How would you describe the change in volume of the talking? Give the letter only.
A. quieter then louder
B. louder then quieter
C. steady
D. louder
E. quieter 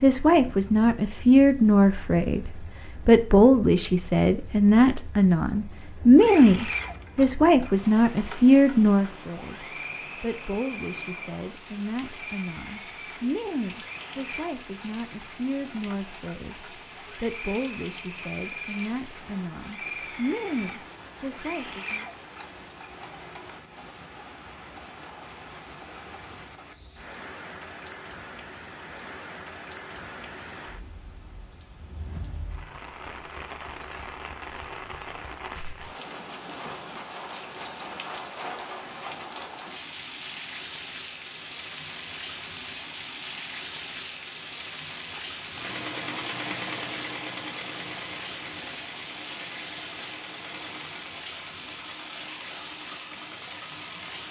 E.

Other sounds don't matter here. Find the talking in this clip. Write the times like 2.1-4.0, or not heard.
0.0-22.1.